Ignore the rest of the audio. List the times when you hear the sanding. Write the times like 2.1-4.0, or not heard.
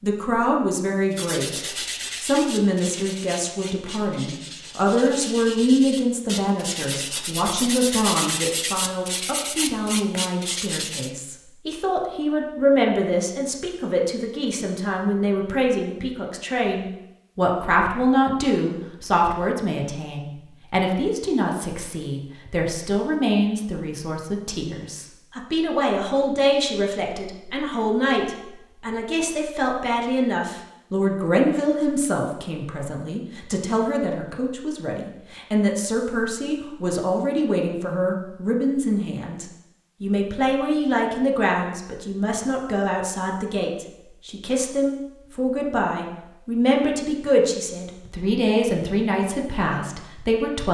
1.1-11.1.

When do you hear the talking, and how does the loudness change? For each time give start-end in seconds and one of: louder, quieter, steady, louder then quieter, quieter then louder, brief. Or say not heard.
0.0-50.6 steady.